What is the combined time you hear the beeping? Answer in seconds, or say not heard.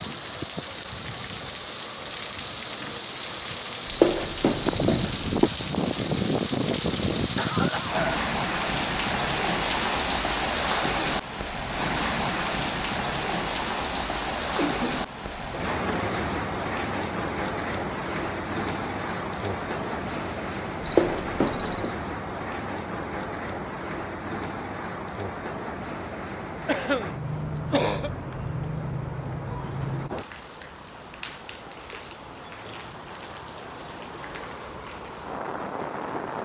3 s.